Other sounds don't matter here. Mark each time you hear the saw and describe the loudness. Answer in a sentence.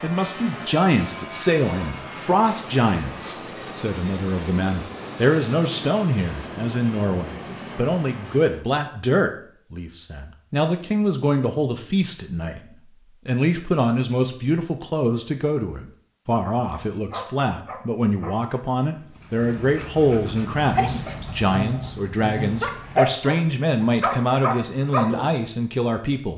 The saw can't be heard in this clip.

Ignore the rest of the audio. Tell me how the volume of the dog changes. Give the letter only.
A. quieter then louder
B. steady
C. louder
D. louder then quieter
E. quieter
C.